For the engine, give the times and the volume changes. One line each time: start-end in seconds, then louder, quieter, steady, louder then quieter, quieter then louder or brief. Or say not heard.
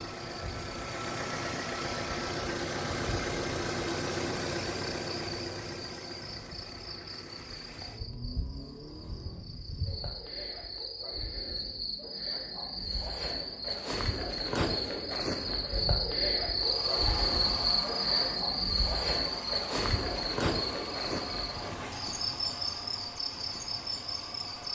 0.0-10.1 quieter
16.6-24.6 quieter.